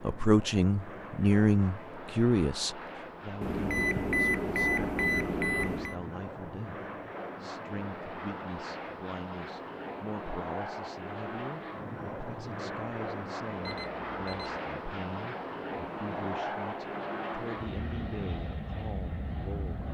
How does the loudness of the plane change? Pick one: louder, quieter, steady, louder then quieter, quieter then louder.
louder.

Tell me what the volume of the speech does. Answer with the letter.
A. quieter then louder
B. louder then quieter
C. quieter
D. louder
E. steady
C.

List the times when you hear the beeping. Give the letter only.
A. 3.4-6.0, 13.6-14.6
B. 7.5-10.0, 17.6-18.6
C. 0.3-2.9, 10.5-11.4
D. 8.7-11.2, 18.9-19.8
A.